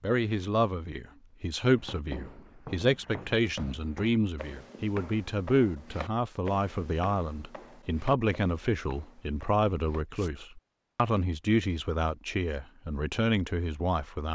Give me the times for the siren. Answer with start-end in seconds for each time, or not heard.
not heard.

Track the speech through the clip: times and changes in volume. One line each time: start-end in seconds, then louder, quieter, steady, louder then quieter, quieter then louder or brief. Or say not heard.
0.0-14.2 steady.